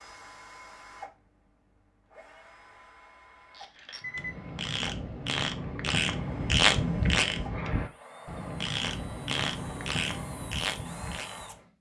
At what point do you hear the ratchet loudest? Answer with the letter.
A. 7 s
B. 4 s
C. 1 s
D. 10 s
A.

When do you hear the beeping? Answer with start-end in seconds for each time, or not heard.
4.0-4.4.